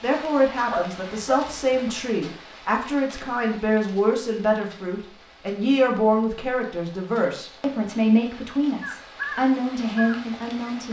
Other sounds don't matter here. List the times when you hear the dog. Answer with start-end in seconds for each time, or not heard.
0.7-1.8.